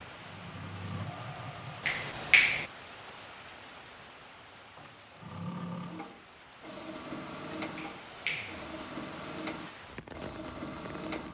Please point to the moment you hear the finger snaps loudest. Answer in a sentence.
The volume of the finger snaps peaks at 2 seconds.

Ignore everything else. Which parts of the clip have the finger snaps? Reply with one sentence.
The finger snaps can be heard from 1.9 to 2.6 s and from 7.8 to 8.7 s.